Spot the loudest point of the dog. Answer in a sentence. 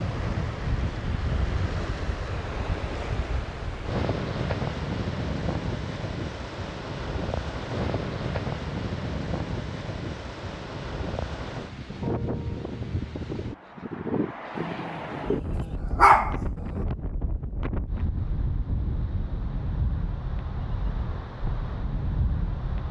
The loudest moment of the dog is at 16 seconds.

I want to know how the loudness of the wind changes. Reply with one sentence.
The volume of the wind stays about the same.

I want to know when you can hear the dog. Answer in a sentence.
The dog can be heard from 14.6 to 16.9 s.